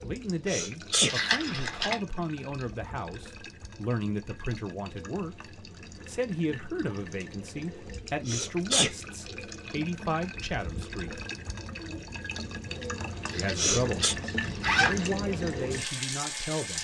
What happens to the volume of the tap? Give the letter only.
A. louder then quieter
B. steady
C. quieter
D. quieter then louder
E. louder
E.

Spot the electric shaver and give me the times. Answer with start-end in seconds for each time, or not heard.
not heard.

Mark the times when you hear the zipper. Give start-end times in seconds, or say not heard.
1.1-1.9, 13.2-15.2.